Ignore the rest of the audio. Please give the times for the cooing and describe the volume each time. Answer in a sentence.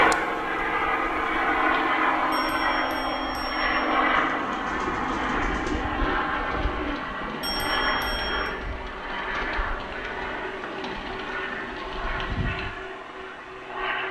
You can hear the cooing from 4.1 to 12.7 s, getting quieter.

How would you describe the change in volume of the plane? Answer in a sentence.
The volume of the plane goes down.